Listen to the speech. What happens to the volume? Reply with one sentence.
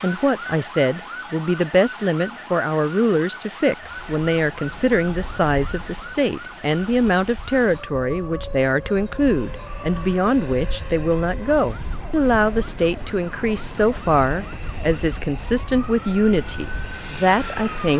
The volume of the speech stays about the same.